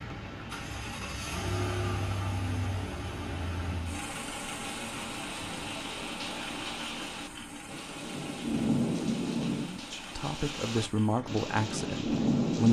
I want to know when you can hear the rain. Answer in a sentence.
You can hear the rain from 0.0 to 12.6 s.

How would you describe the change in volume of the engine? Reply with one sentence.
The volume of the engine goes down.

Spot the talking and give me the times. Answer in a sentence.
The talking can be heard from 9.6 to 12.6 s.